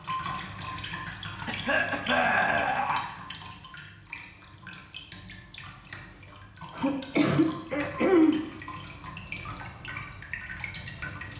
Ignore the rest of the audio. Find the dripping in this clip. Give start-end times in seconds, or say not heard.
0.0-11.3.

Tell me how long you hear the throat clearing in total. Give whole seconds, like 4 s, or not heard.
3 s.